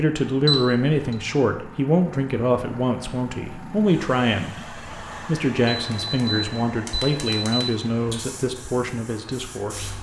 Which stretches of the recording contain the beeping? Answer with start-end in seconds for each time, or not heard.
0.5-1.1, 5.7-8.2.